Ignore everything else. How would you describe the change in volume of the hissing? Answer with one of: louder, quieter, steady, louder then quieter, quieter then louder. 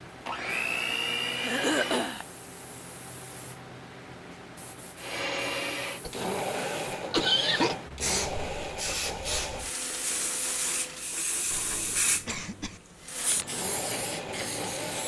louder.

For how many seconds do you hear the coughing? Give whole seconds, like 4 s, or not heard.
4 s.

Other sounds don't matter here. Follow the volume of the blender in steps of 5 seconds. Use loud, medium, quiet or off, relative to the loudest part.
loud, loud, medium.